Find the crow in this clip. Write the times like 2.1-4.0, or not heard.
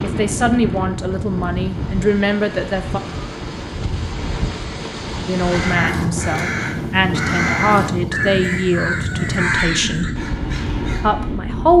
5.3-11.4.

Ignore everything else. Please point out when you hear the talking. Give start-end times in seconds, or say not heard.
0.0-3.0, 5.2-10.1, 10.8-11.7.